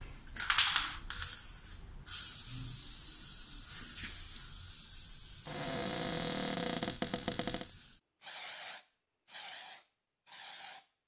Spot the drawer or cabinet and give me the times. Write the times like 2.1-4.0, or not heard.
5.5-7.7.